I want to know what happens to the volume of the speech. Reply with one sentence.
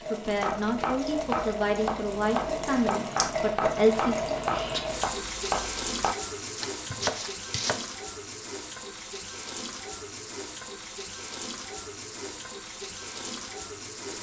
The volume of the speech goes up.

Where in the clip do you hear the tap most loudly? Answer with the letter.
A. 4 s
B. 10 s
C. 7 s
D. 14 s
A.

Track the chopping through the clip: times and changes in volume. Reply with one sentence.
The chopping can be heard from 0.3 to 7.9 s, at a steady volume.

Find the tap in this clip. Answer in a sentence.
You can hear the tap from 0.0 to 14.1 s.